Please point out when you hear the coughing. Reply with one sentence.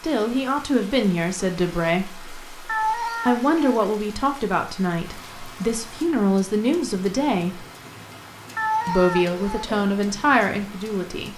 You can't hear the coughing here.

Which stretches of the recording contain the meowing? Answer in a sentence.
The meowing can be heard from 2.6 to 3.9 s and from 8.6 to 9.8 s.